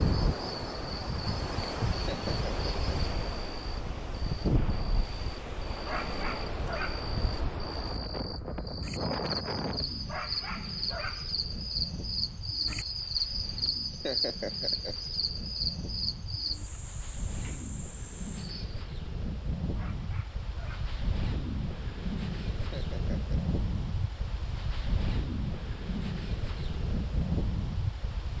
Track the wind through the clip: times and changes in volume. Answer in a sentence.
The wind can be heard from 0.0 to 28.3 s, getting quieter then louder.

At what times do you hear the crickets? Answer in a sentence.
The crickets can be heard from 0.0 to 18.9 s.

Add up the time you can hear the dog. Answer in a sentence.
The dog can be heard for 4 seconds in total.